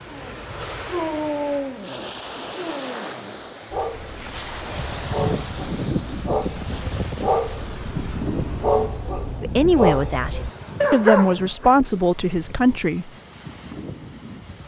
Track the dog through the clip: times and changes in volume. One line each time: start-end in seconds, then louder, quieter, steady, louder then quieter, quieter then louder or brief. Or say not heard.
0.1-11.8 quieter then louder.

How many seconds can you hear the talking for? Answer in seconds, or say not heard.
4 s.